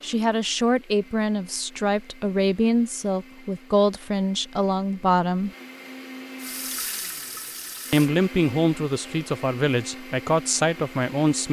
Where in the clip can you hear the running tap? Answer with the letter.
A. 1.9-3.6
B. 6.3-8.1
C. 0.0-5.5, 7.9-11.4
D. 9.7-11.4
B.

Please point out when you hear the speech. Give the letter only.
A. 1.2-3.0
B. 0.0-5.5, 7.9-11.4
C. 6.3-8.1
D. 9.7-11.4
B.